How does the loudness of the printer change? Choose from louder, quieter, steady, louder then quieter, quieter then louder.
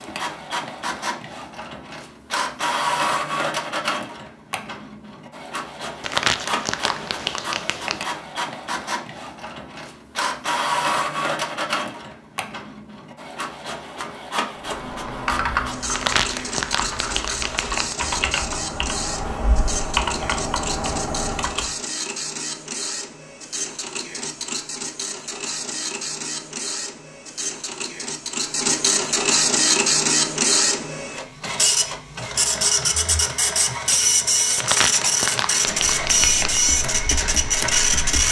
louder.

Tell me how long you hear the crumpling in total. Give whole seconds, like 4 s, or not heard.
6 s.